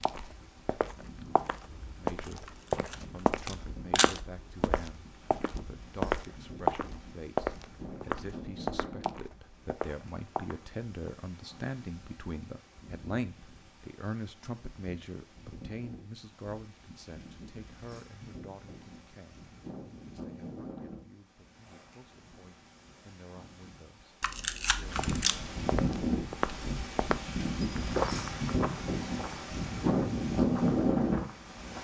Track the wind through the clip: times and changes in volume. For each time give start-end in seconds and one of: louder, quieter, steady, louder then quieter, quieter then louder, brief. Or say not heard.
0.0-31.7 louder.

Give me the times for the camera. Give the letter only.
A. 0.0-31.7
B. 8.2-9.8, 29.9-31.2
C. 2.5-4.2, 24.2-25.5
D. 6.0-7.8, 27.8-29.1
C.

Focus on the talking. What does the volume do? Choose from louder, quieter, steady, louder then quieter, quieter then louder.
louder then quieter.